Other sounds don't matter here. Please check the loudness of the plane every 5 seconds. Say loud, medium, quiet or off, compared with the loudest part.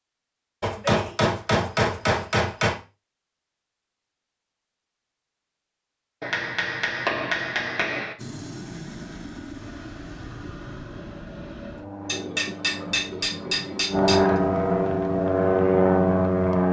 off, quiet, medium, loud.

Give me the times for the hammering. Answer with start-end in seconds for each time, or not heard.
0.6-2.8, 6.2-8.2, 12.1-14.4.